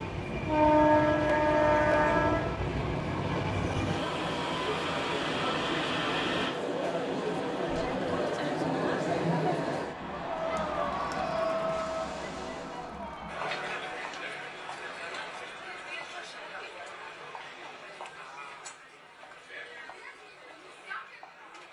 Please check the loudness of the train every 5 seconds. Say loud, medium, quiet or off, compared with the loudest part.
loud, medium, quiet, off, off.